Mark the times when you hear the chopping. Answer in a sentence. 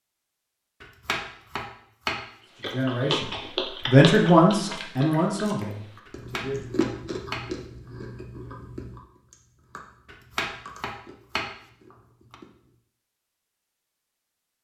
You can hear the chopping from 0.8 to 2.2 s, from 6.0 to 7.5 s and from 10.1 to 12.3 s.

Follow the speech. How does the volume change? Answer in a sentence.
The volume of the speech goes up, then down.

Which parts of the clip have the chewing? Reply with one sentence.
The chewing can be heard from 2.6 to 12.8 s.